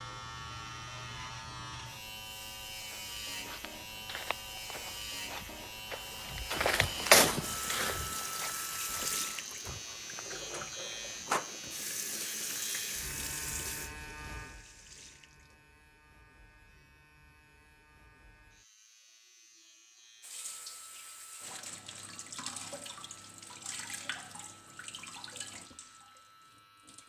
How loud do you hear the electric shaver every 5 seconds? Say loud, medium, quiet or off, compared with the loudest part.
loud, loud, loud, quiet, quiet, quiet.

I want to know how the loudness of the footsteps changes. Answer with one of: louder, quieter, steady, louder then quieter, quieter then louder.
louder then quieter.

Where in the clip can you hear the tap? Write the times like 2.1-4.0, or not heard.
7.4-15.7, 20.2-27.0.